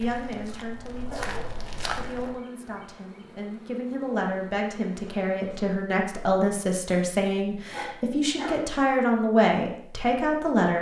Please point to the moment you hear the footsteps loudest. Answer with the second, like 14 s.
2 s.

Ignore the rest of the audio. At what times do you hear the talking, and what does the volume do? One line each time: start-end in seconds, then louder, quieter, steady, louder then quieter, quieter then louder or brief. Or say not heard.
0.0-10.7 louder.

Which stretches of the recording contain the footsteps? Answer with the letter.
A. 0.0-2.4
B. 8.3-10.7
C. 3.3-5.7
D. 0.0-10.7
A.